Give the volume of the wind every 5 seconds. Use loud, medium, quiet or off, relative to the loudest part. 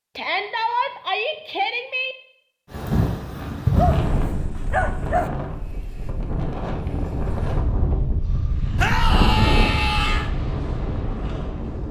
loud, loud, medium.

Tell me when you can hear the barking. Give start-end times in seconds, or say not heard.
3.8-5.3.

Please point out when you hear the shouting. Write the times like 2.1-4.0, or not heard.
0.1-2.1, 8.8-10.3.